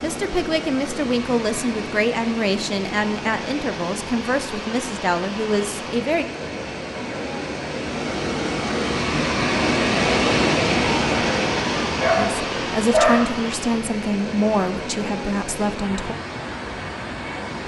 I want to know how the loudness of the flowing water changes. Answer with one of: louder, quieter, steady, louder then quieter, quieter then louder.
louder then quieter.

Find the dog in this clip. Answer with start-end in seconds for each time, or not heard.
11.8-13.3.